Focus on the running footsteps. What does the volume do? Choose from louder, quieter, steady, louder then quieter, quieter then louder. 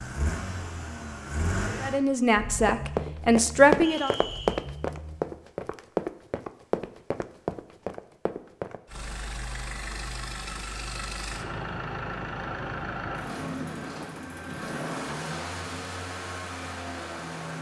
quieter.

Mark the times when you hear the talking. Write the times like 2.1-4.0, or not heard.
1.8-4.2.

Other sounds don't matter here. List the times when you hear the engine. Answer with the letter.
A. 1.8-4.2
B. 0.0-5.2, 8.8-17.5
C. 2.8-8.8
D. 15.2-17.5
B.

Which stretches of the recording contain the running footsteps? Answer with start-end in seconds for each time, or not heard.
2.8-8.8.